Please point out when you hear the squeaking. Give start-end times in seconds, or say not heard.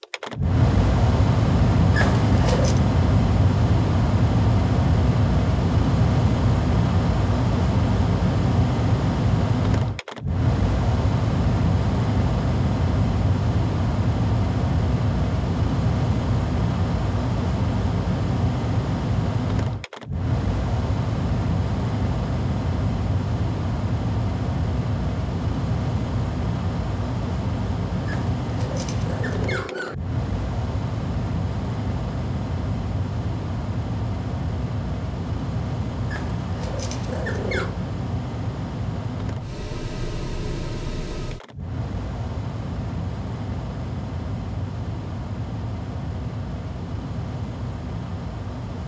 1.9-2.8, 28.1-29.9, 36.0-37.8.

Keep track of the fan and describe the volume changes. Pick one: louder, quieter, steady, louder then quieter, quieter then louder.
quieter.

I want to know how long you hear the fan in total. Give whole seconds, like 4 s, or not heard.
49 s.